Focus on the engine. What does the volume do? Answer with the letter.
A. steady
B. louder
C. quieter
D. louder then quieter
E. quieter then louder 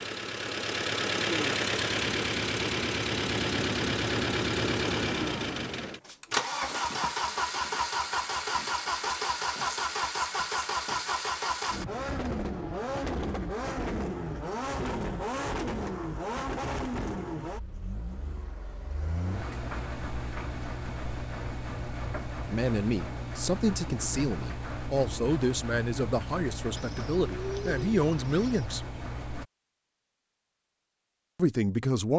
C.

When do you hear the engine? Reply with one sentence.
The engine can be heard from 0.0 to 29.4 s.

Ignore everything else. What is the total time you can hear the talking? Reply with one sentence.
The talking can be heard for 7 seconds in total.